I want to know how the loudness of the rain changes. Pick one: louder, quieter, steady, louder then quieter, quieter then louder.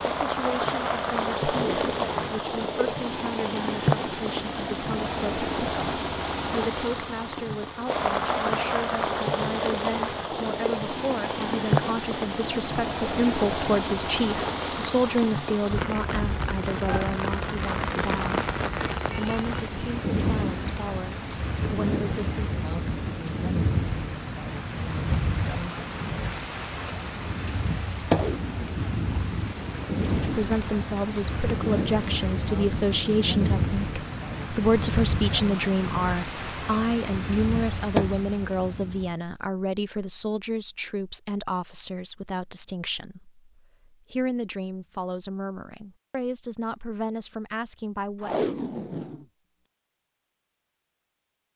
steady.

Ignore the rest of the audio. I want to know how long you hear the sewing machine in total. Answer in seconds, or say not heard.
not heard.